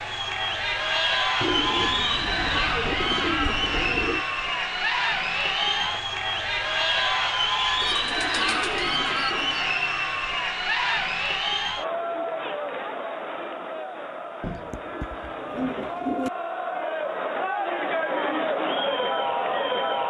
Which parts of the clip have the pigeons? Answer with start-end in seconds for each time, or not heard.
1.4-4.2, 7.8-9.7, 14.4-16.3.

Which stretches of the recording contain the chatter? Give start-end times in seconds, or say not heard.
0.0-20.0.